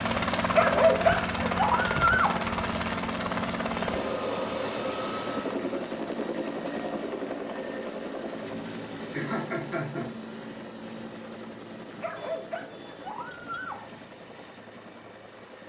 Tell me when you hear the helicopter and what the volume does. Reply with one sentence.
The helicopter can be heard from 0.0 to 15.6 s, getting quieter.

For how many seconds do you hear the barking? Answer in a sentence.
You can hear the barking for 4 seconds altogether.